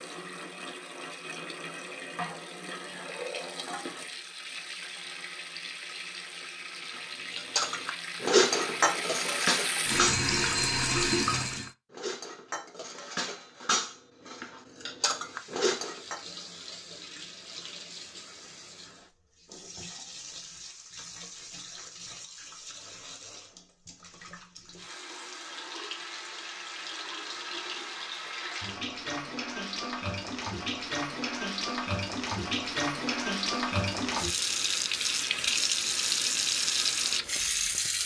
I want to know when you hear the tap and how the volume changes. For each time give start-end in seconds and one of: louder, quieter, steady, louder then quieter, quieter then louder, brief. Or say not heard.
0.0-11.7 louder
15.1-38.0 louder.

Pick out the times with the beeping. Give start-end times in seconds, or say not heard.
not heard.